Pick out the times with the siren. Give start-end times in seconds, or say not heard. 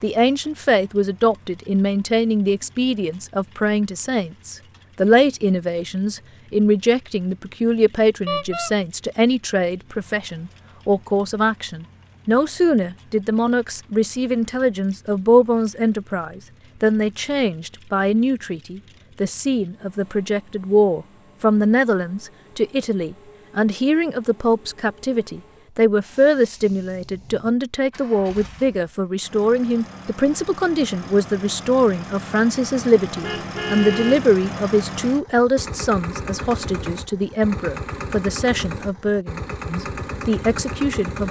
not heard.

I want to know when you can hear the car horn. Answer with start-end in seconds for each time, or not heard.
8.2-8.8, 32.8-34.3.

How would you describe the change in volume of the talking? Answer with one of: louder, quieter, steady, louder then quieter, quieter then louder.
steady.